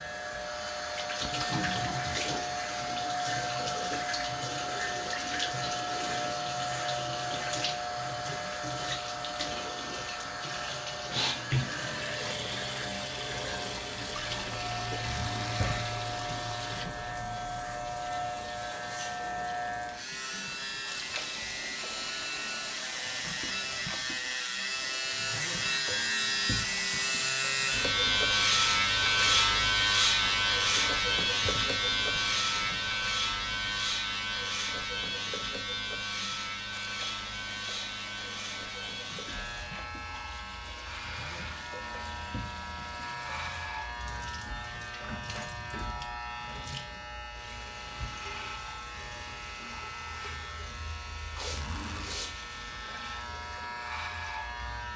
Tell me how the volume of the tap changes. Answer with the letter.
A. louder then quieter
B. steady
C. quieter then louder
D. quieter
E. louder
D.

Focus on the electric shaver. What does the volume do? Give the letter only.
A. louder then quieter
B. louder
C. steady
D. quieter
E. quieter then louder
A.